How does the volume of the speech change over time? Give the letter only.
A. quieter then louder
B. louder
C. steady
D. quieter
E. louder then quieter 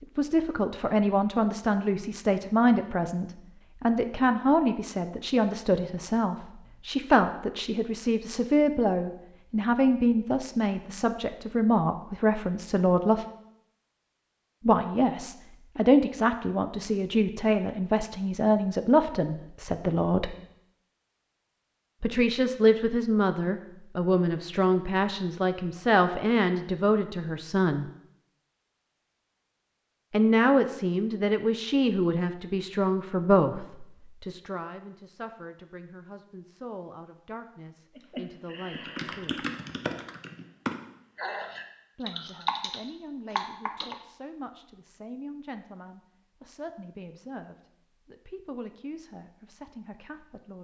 D.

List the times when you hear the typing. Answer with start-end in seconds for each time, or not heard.
38.0-44.0.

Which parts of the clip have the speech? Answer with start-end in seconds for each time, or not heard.
0.0-13.2, 14.6-20.4, 22.0-27.9, 30.1-39.5, 42.0-50.5.